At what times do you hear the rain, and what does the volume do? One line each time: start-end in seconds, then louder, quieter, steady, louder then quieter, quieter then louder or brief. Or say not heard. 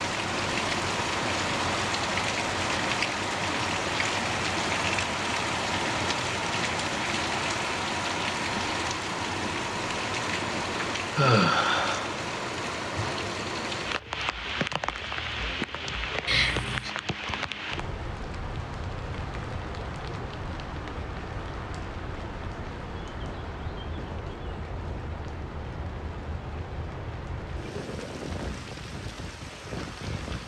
0.0-30.4 quieter.